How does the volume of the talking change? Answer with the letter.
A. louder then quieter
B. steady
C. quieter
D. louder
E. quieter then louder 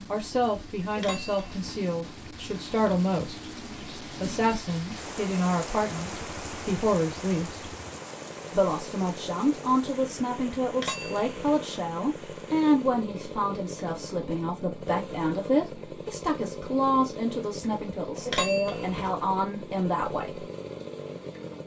B.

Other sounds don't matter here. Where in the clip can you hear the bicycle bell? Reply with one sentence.
You can hear the bicycle bell from 0.9 to 1.8 s, from 10.8 to 11.6 s and from 18.2 to 19.1 s.